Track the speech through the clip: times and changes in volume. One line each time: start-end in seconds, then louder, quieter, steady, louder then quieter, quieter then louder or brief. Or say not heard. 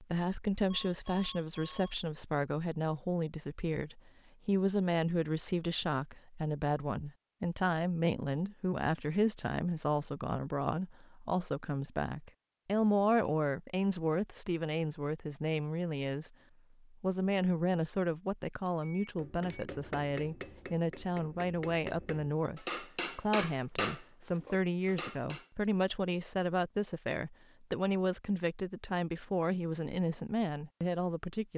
0.0-31.5 steady.